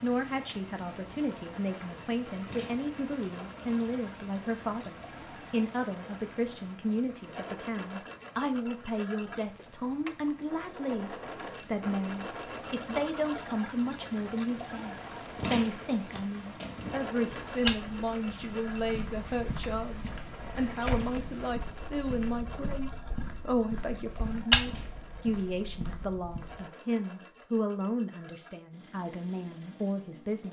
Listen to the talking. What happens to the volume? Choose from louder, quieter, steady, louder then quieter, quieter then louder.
steady.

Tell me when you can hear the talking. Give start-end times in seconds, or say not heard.
0.0-30.4.